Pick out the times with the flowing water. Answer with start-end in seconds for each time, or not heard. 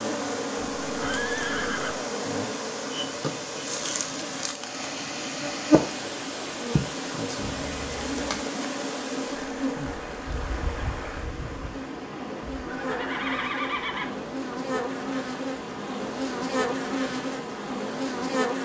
0.0-18.6.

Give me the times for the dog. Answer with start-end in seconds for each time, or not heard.
not heard.